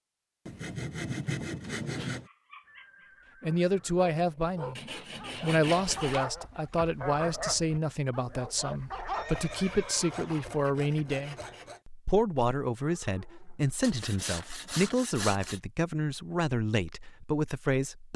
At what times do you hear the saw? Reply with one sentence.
You can hear the saw from 0.5 to 2.3 s, from 4.8 to 6.2 s, from 9.2 to 11.8 s and from 13.8 to 15.6 s.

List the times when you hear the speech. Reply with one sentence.
You can hear the speech from 3.4 to 4.8 s and from 5.4 to 18.1 s.